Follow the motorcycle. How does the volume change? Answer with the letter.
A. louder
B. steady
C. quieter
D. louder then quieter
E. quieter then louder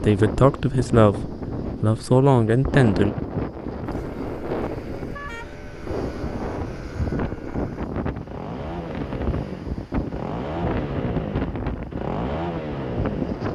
A.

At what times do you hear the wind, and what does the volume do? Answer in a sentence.
You can hear the wind from 0.0 to 13.5 s, at a steady volume.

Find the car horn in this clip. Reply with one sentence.
The car horn can be heard from 3.9 to 5.5 s.